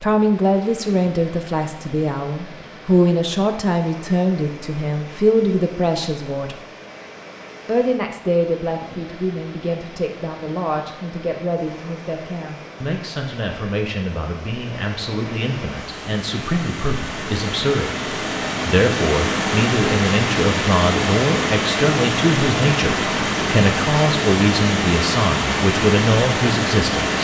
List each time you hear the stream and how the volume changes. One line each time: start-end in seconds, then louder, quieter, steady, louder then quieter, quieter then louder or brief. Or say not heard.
0.0-27.2 louder.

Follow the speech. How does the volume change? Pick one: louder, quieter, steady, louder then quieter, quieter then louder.
quieter then louder.